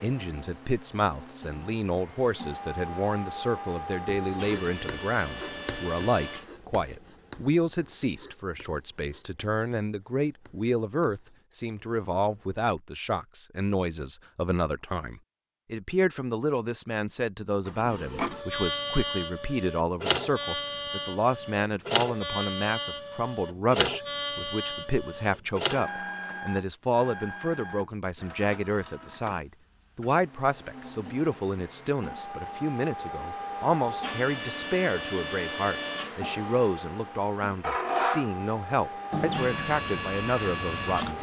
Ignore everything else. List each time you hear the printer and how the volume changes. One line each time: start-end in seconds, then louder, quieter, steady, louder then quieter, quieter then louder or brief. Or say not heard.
0.0-6.5 louder
17.6-41.1 quieter then louder.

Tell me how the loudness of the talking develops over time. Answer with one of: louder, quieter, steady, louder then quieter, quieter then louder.
steady.